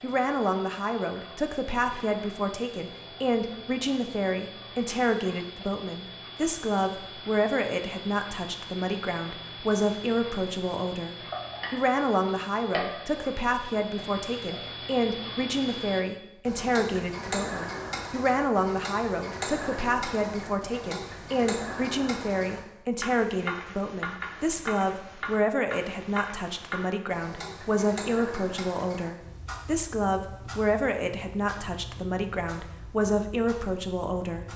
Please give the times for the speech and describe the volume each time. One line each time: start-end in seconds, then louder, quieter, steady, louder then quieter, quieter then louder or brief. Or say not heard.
0.0-34.5 steady.